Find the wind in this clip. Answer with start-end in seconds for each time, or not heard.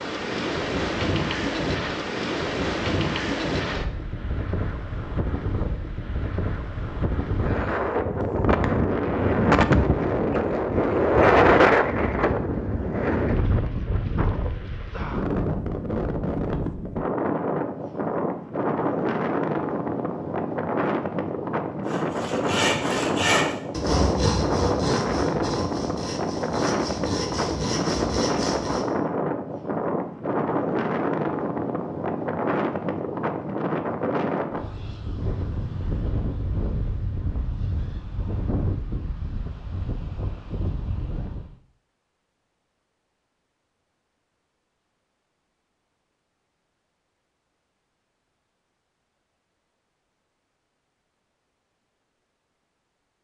0.0-41.5.